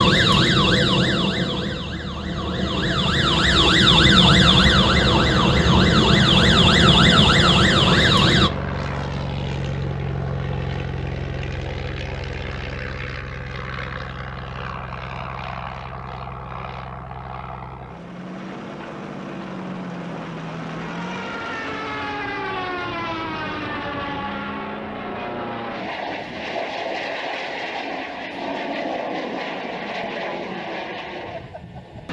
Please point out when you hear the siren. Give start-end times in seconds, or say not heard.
0.0-8.5.